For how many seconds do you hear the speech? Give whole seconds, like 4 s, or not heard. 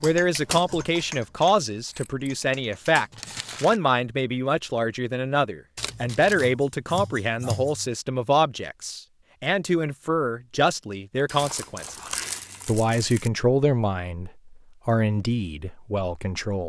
16 s.